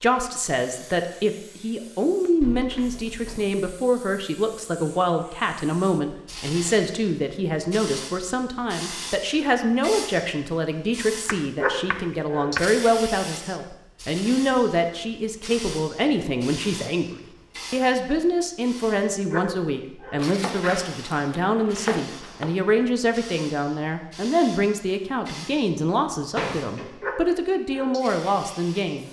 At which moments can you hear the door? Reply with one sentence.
You can hear the door from 2.4 to 3.5 s and from 26.4 to 27.0 s.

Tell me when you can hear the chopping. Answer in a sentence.
You can hear the chopping from 11.2 to 12.8 s and from 20.1 to 22.6 s.